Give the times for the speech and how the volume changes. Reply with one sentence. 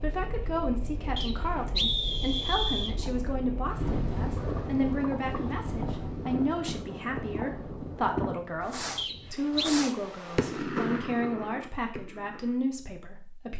You can hear the speech from 0.0 to 13.5 s, at a steady volume.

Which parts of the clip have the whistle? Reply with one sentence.
The whistle can be heard from 1.1 to 3.0 s and from 8.9 to 9.7 s.